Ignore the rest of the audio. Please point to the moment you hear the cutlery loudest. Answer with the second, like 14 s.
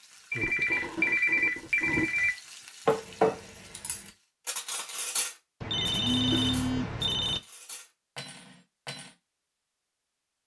3 s.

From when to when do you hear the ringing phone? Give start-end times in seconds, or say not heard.
0.3-2.4, 5.6-7.4.